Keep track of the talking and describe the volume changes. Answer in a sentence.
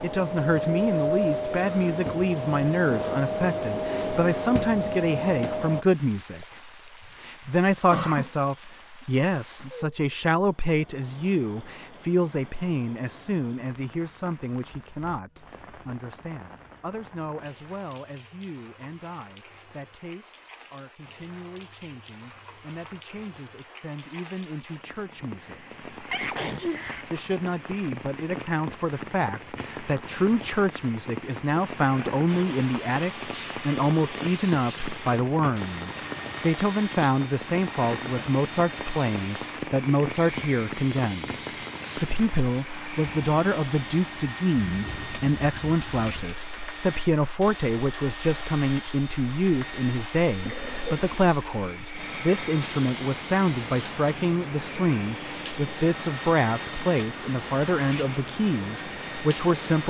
The volume of the talking goes down, then up.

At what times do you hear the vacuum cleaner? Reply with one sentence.
The vacuum cleaner can be heard from 0.0 to 5.8 s and from 32.2 to 59.8 s.